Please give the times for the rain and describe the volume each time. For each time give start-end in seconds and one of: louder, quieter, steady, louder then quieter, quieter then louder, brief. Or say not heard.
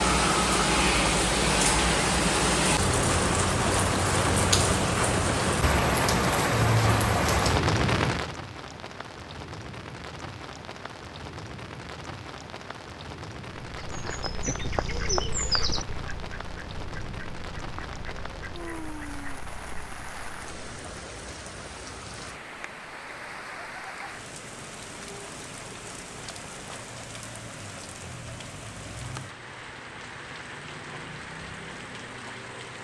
0.0-32.7 quieter.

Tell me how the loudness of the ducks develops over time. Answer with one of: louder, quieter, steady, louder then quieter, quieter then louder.
quieter.